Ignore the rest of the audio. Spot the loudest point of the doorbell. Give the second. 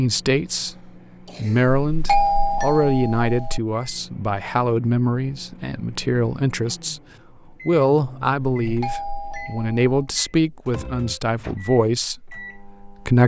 2 s.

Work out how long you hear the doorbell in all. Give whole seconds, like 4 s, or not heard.
3 s.